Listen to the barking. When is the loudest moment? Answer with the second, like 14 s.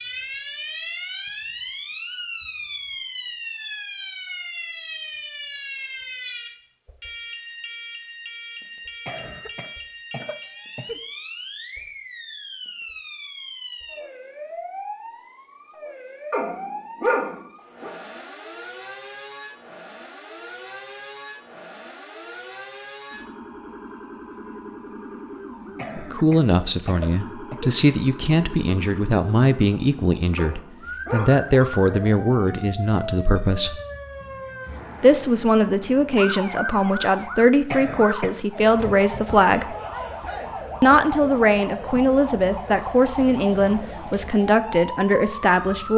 17 s.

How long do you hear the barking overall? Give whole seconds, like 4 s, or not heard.
3 s.